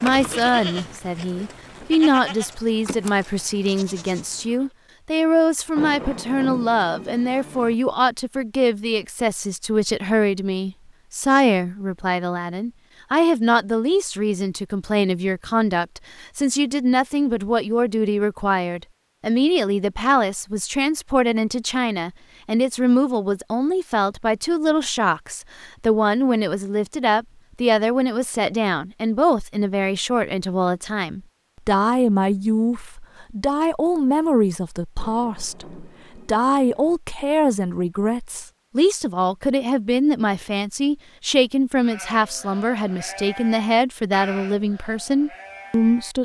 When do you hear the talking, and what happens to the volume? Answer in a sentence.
The talking can be heard from 0.0 to 46.2 s, at a steady volume.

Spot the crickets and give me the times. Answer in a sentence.
The crickets can't be heard in this clip.